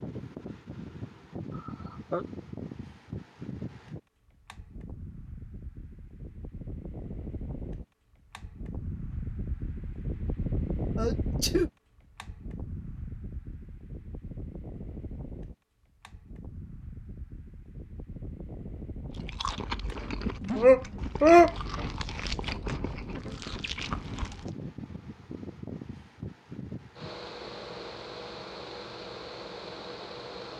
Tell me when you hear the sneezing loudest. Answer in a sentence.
The volume of the sneezing peaks at 21 seconds.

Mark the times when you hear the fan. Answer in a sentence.
You can hear the fan from 0.0 to 30.5 s.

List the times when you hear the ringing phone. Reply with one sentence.
You can't hear the ringing phone here.